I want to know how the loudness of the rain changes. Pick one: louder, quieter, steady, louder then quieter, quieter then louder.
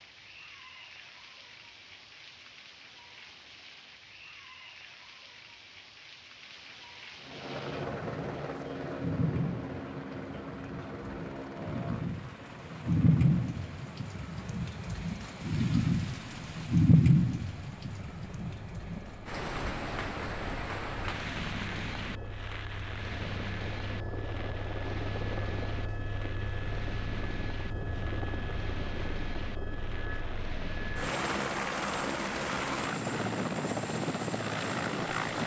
louder then quieter.